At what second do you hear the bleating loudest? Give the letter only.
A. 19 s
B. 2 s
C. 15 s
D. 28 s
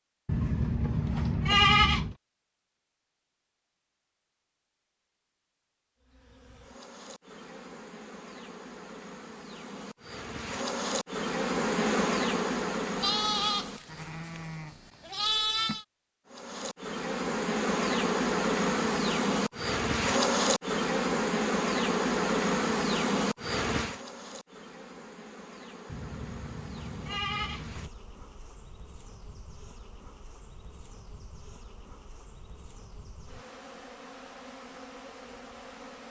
B.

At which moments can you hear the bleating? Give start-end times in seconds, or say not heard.
0.2-2.1, 12.9-15.8, 25.9-27.9.